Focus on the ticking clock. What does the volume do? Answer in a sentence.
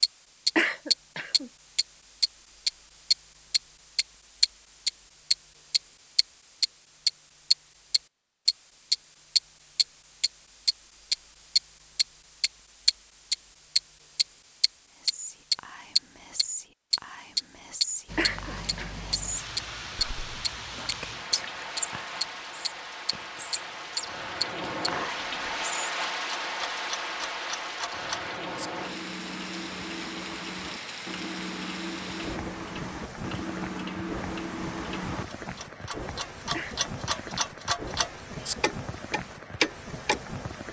The volume of the ticking clock goes down, then up.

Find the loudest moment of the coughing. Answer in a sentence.
The loudest moment of the coughing is at 1 second.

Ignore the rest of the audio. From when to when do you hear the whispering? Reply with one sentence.
The whispering can be heard from 14.9 to 25.9 s.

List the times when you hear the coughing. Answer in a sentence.
You can hear the coughing from 0.6 to 1.5 s, from 18.1 to 18.9 s and from 36.5 to 37.4 s.